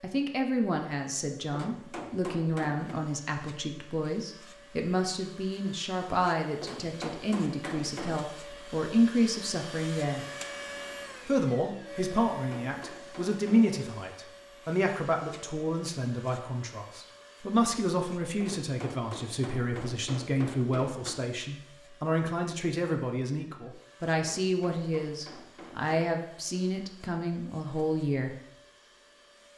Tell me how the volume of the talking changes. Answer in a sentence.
The volume of the talking stays about the same.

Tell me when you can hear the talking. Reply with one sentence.
The talking can be heard from 0.0 to 10.2 s and from 11.2 to 28.4 s.